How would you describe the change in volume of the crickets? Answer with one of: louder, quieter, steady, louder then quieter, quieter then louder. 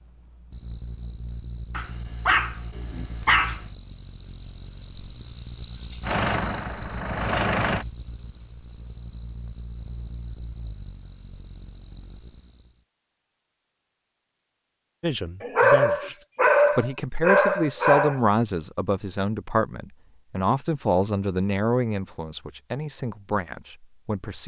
louder then quieter.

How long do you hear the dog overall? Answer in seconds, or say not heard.
5 s.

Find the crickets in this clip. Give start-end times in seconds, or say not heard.
0.0-12.8.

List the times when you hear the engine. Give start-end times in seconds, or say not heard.
6.0-7.8.